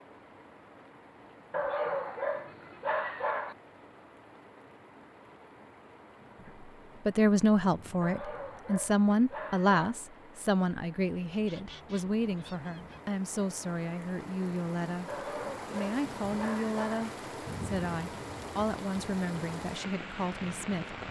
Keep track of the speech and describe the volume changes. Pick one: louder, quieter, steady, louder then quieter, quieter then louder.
quieter.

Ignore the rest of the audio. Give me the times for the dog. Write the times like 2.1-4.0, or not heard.
1.5-3.5, 8.0-9.8, 15.1-17.1.